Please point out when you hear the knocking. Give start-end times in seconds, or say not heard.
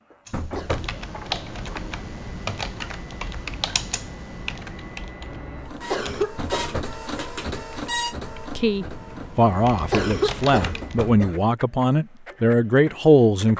0.3-1.0, 6.3-7.0, 10.6-11.3.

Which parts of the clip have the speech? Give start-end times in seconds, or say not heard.
8.6-13.5.